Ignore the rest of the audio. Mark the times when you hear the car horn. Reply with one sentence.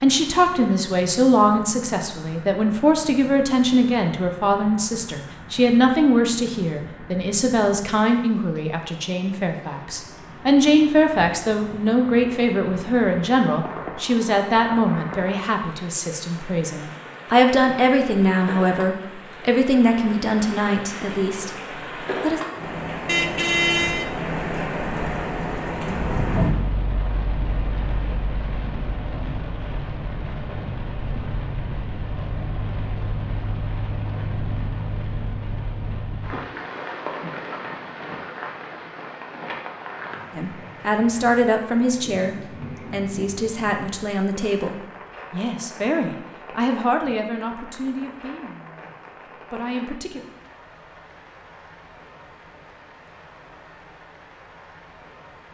You can hear the car horn from 23.1 to 24.1 s.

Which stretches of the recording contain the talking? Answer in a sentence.
You can hear the talking from 0.0 to 22.4 s, from 40.3 to 48.9 s and from 49.5 to 50.2 s.